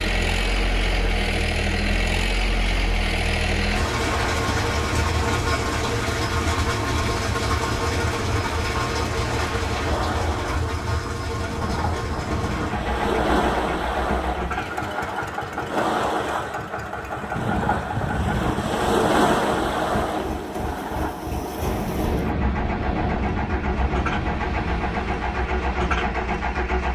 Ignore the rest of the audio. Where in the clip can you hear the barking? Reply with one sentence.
You can't hear the barking here.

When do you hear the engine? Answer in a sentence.
You can hear the engine from 0.0 to 26.9 s.